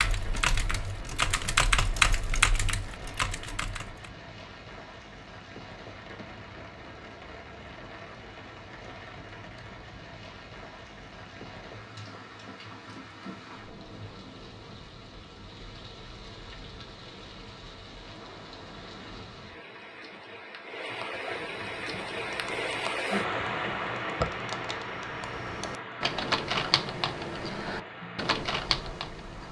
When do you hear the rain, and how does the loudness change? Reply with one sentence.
The rain can be heard from 0.0 to 29.4 s, getting louder.